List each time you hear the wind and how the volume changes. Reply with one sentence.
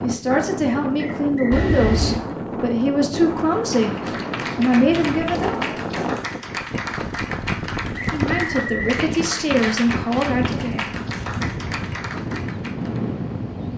You can hear the wind from 0.0 to 13.7 s, at a steady volume.